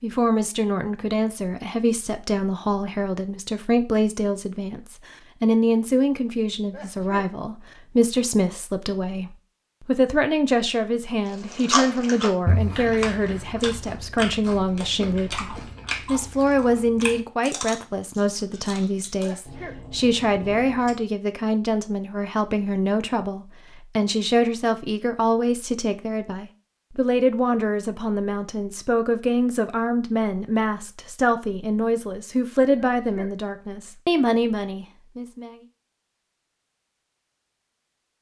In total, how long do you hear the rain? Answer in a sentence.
You can't hear the rain here.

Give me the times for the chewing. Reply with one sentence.
The chewing can be heard from 11.4 to 21.1 s.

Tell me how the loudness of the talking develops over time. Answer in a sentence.
The volume of the talking stays about the same.